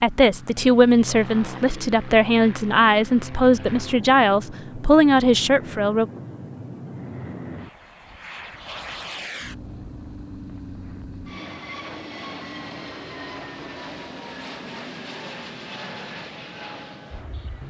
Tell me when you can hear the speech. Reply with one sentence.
You can hear the speech from 0.0 to 6.0 s.